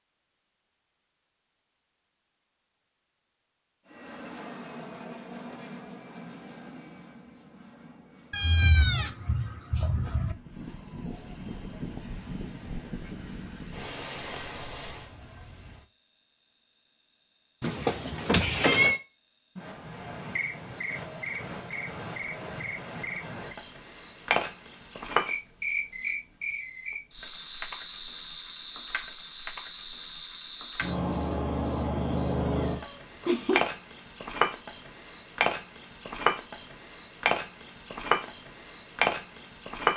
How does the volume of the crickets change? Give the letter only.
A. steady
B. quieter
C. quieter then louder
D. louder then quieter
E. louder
A.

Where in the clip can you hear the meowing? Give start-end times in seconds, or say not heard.
8.3-10.3, 17.6-19.0, 32.4-33.6.